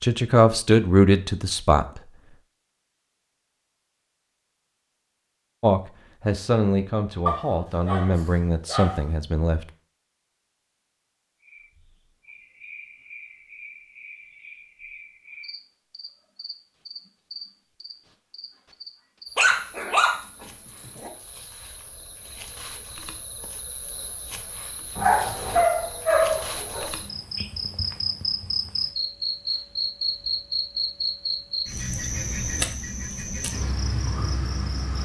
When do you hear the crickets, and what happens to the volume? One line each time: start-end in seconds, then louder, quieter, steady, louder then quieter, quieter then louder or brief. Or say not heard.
11.4-34.9 louder.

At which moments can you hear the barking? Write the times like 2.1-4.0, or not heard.
7.2-9.1, 19.4-21.1, 24.9-26.9.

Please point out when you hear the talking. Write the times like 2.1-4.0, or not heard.
0.0-2.0, 5.6-9.7.